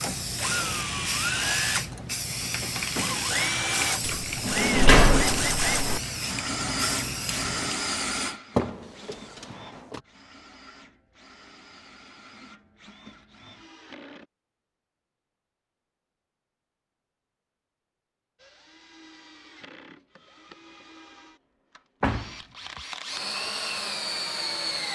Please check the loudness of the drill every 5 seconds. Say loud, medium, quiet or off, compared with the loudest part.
loud, loud, quiet, quiet, medium.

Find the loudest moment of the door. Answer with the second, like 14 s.
5 s.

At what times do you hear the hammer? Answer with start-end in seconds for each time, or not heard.
not heard.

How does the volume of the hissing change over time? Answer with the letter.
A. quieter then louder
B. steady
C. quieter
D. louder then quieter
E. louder
B.